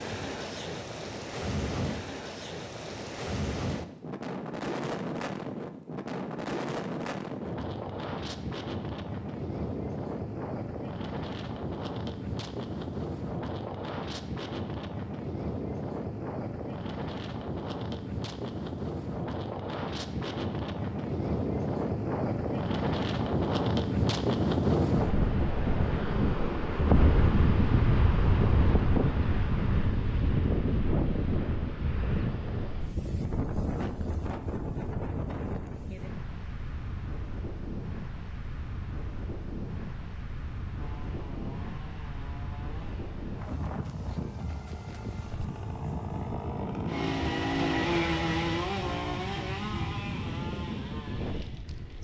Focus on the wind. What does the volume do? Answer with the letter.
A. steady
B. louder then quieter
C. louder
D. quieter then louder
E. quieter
B.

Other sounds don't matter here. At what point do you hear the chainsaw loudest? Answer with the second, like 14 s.
48 s.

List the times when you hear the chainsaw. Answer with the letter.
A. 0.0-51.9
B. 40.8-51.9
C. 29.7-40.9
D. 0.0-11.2
B.